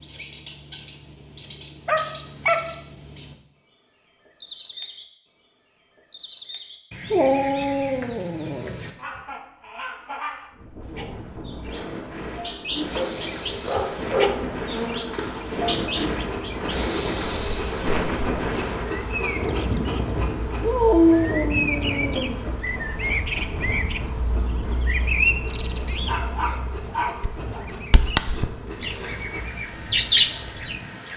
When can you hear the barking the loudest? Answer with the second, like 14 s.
21 s.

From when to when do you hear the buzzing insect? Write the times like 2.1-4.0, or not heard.
13.6-29.4.